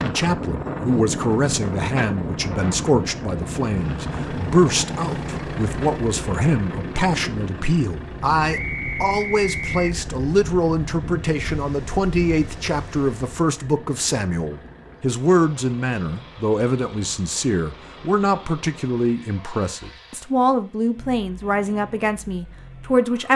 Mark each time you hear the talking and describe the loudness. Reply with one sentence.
The talking can be heard from 0.0 to 23.3 s, at a steady volume.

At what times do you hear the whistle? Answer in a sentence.
You can hear the whistle from 8.5 to 9.9 s.